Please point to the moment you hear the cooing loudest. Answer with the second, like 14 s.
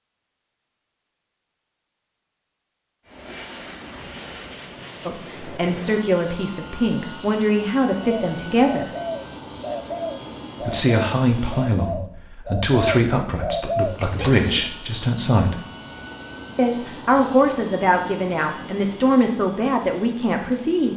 14 s.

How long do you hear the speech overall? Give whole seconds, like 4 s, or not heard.
13 s.